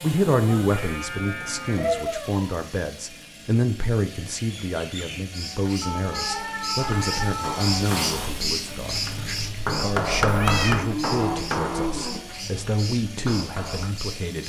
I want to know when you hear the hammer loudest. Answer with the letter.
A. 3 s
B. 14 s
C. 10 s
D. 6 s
C.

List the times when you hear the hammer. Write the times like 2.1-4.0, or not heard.
6.8-13.8.